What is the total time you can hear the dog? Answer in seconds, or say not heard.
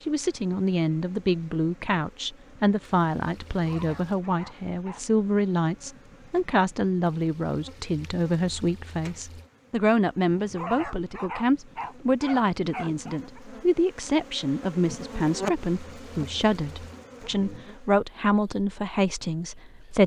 4 s.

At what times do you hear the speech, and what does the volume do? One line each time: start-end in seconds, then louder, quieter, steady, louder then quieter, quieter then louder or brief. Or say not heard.
0.1-20.0 steady.